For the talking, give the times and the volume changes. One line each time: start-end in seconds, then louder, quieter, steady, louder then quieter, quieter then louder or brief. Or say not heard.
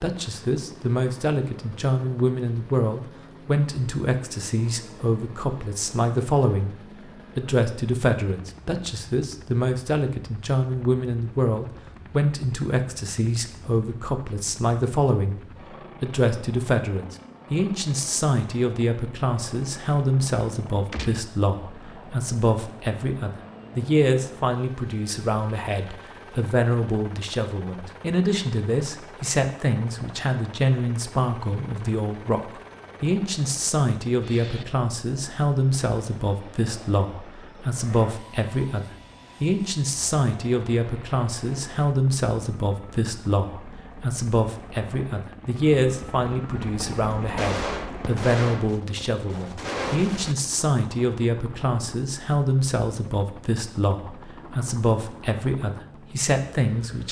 0.0-6.8 steady
7.3-15.4 steady
16.0-57.0 steady.